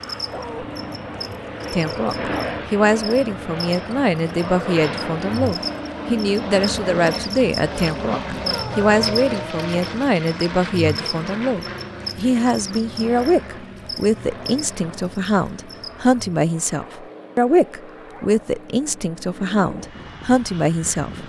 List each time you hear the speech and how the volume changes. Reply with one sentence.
The speech can be heard from 1.7 to 21.2 s, at a steady volume.